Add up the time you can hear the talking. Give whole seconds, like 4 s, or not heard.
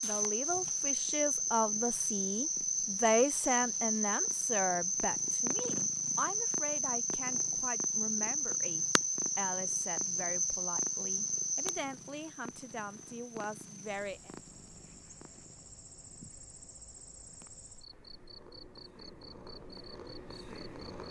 14 s.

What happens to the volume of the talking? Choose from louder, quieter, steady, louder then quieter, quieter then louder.
quieter.